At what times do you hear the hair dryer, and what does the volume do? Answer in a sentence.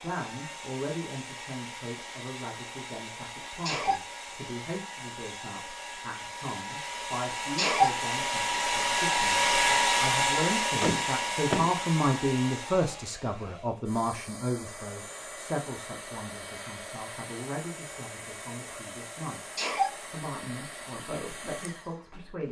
You can hear the hair dryer from 0.0 to 22.4 s, getting louder then quieter.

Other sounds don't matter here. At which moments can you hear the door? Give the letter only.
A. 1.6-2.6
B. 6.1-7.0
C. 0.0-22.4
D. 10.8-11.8
D.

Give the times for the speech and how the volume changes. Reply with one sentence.
You can hear the speech from 0.0 to 22.4 s, getting louder then quieter.